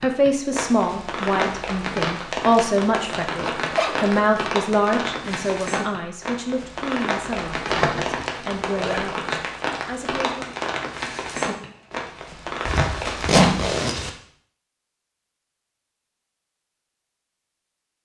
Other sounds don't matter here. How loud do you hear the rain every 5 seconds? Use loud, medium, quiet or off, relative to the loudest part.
loud, loud, loud, off.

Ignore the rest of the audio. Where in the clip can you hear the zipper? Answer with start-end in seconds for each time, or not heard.
3.4-4.3, 7.7-9.1, 12.7-14.1.